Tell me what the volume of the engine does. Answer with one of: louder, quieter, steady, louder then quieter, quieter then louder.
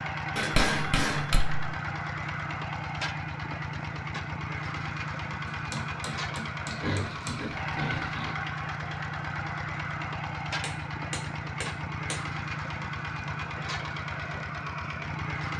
steady.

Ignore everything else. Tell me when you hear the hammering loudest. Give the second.
1 s.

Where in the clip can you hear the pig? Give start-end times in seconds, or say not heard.
6.7-8.3.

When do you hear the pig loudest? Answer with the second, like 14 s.
7 s.